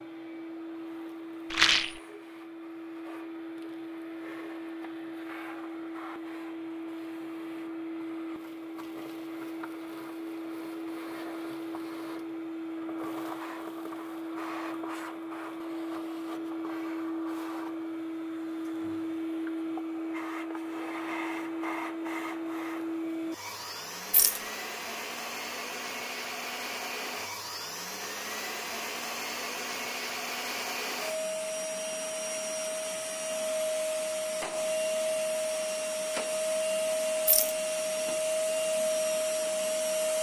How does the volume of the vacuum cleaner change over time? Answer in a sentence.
The volume of the vacuum cleaner goes up.